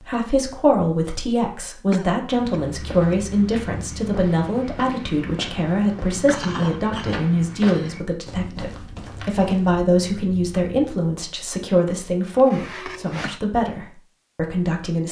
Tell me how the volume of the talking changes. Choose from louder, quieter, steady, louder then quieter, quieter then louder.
steady.